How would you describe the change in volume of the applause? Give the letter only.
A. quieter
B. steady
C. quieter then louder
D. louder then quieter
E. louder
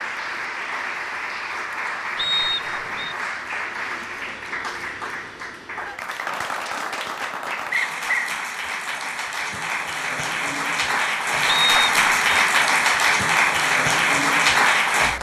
E.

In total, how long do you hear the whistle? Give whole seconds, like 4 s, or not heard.
3 s.